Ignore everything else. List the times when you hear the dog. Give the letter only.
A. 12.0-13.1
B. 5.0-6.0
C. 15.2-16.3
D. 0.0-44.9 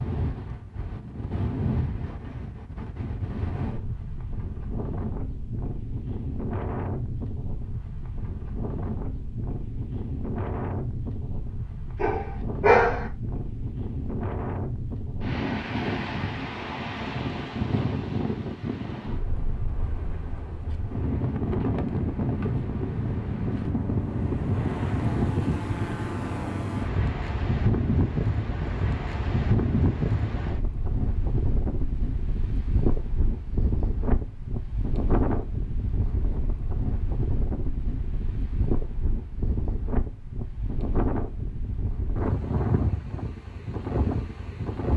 A.